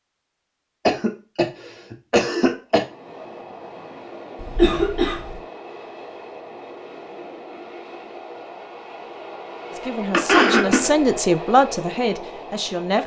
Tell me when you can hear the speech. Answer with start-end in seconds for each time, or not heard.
9.7-13.0.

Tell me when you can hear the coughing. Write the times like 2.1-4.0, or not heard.
0.8-2.9, 4.4-5.4, 10.1-10.9.